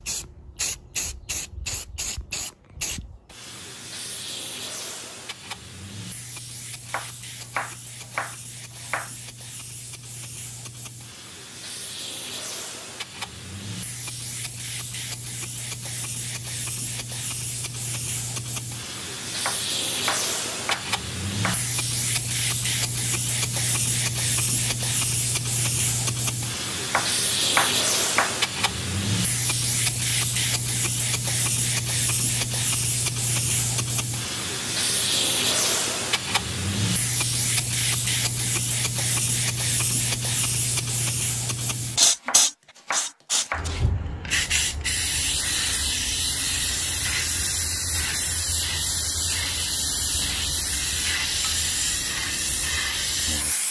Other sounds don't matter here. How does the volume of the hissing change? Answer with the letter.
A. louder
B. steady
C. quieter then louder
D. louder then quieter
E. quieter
A.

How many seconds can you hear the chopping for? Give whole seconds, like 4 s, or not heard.
8 s.